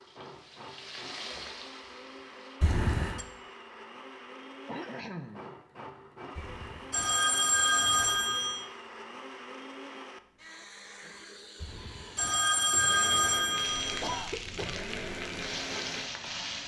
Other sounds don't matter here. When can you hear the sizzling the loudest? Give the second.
16 s.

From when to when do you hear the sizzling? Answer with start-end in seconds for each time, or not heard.
0.0-2.6, 13.6-16.6.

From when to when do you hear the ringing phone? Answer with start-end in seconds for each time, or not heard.
2.6-3.2, 6.3-8.7, 11.6-14.2.